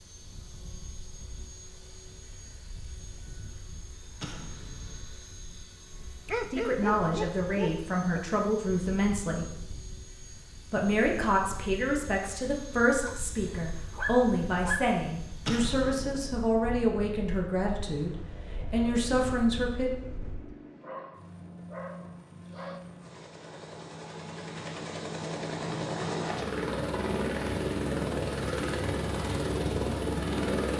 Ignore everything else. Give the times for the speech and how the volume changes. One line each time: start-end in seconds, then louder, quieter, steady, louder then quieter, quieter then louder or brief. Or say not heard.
6.5-9.4 brief
10.7-19.9 steady.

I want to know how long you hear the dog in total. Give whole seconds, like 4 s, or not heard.
6 s.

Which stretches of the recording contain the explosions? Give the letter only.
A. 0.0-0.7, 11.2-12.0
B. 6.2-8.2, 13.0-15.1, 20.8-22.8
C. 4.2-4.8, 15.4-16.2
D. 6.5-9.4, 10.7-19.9
C.